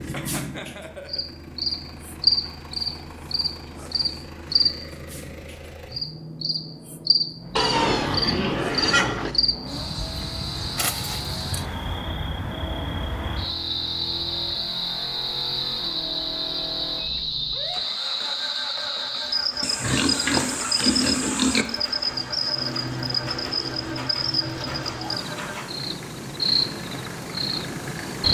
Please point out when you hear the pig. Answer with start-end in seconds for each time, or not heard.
7.5-9.3, 19.6-21.6.